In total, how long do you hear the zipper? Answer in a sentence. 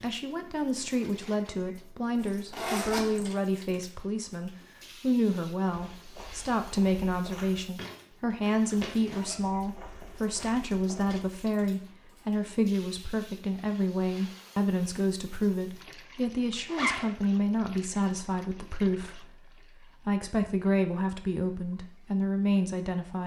You can hear the zipper for 3 seconds altogether.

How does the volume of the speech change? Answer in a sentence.
The volume of the speech stays about the same.